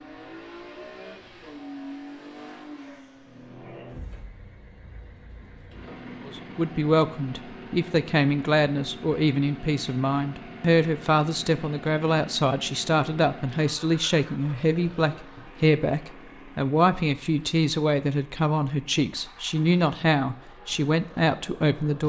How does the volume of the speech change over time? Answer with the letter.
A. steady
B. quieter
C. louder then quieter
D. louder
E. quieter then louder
A.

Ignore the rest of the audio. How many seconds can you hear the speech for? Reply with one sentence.
The speech can be heard for 16 seconds in total.